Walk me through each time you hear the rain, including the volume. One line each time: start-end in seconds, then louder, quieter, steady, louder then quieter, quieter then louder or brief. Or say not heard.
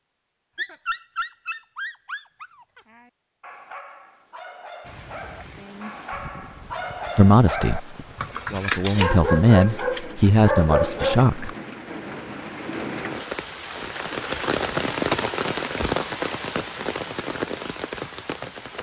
4.8-18.7 louder.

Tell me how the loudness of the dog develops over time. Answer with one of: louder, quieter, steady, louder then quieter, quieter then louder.
quieter then louder.